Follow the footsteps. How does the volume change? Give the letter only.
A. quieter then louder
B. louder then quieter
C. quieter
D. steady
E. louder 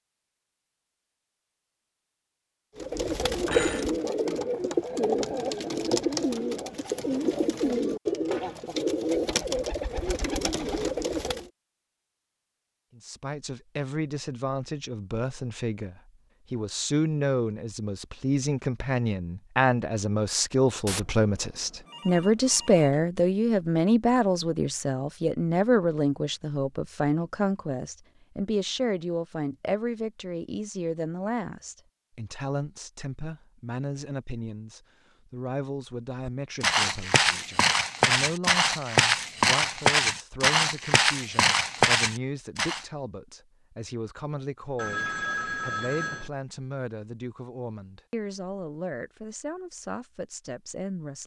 D.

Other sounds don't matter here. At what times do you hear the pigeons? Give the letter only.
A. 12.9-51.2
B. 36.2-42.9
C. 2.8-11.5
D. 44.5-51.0
C.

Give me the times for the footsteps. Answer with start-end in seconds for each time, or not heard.
36.2-42.9.